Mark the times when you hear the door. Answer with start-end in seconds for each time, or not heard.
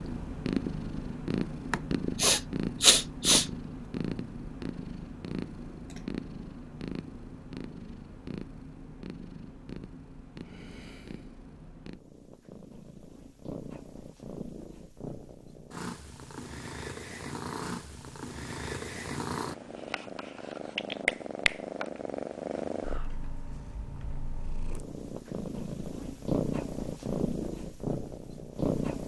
not heard.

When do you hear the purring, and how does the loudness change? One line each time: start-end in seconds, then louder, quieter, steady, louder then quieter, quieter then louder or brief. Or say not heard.
0.0-29.0 quieter then louder.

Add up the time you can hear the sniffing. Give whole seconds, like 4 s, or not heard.
2 s.